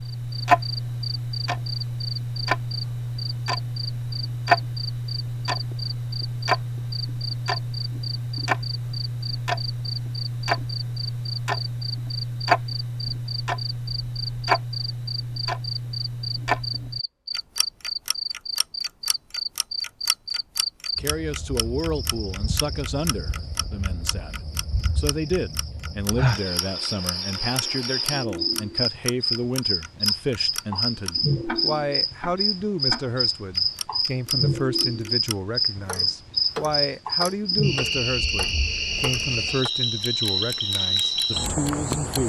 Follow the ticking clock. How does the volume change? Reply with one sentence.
The loudness of the ticking clock goes down.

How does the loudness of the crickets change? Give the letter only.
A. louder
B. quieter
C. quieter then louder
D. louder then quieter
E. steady
A.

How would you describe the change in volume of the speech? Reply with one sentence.
The volume of the speech stays about the same.